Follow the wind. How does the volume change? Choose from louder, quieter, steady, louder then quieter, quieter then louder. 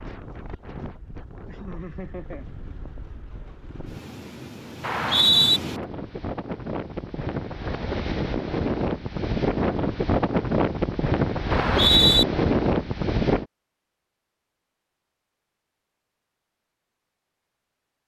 louder.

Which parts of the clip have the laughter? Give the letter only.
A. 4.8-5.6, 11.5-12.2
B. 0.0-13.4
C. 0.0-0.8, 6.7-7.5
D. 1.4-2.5
D.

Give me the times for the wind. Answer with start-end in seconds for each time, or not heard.
0.0-13.4.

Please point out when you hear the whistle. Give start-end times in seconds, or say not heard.
4.8-5.6, 11.5-12.2.